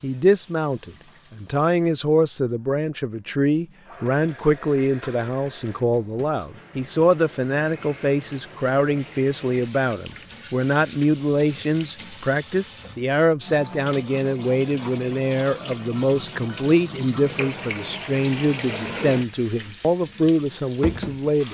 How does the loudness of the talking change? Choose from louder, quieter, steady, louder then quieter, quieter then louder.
steady.